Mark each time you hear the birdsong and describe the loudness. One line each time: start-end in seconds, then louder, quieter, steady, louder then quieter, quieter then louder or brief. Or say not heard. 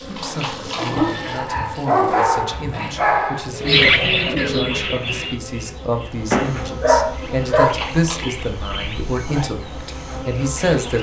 3.5-10.9 quieter.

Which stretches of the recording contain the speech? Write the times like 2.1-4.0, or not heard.
0.0-10.9.